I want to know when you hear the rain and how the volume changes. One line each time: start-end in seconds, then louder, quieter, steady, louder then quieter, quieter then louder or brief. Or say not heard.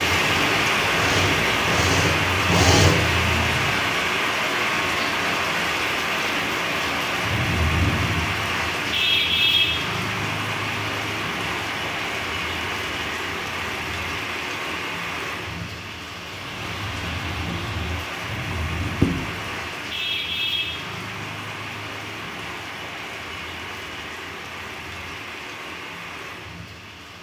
0.0-27.1 quieter.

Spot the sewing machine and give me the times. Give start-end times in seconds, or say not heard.
0.2-3.8.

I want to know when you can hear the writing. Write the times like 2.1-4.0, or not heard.
18.5-19.6.